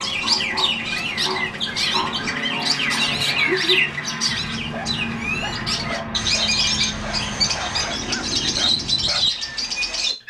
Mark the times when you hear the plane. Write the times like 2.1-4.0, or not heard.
0.0-9.1.